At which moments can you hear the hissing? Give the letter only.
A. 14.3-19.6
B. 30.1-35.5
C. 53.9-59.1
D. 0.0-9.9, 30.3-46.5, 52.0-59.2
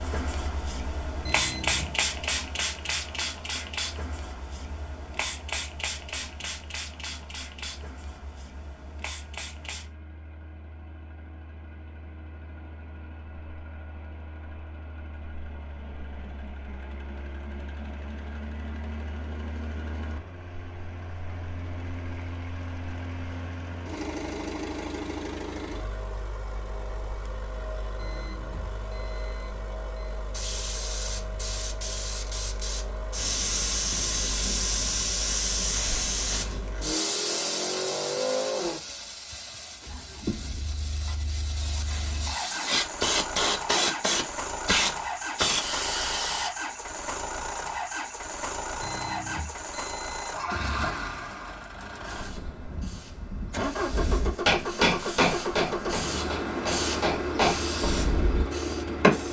D.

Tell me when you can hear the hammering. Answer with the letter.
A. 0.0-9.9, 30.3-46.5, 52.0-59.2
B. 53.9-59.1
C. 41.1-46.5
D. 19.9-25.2
B.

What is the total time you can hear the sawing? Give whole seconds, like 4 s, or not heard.
not heard.